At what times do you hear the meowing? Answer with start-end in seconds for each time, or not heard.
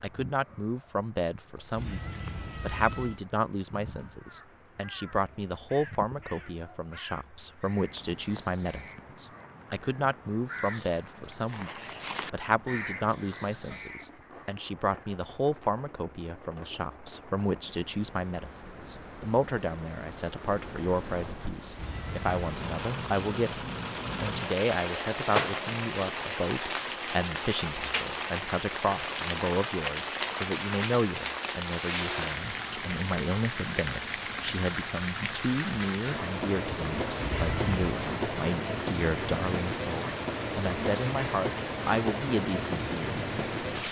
1.8-3.2, 21.8-22.6, 37.3-38.0.